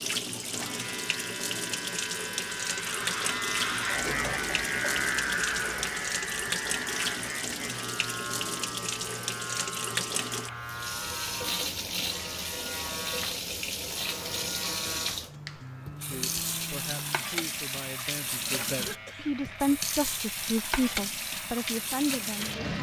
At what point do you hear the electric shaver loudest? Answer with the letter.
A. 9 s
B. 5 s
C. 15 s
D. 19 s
B.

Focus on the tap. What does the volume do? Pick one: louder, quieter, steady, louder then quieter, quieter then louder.
steady.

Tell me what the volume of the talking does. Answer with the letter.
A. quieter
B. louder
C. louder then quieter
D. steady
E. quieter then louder
B.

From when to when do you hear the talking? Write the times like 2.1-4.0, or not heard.
16.1-22.7.